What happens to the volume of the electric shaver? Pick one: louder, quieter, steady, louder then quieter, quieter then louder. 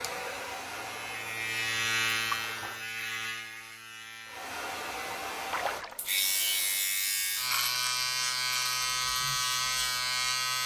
quieter then louder.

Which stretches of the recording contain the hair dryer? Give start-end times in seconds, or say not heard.
0.0-2.8, 4.2-7.0.